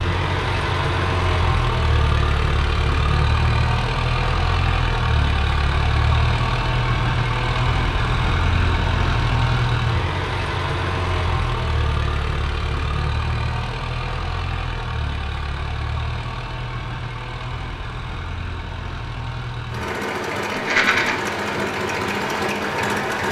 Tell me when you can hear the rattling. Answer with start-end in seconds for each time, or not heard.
20.5-21.1.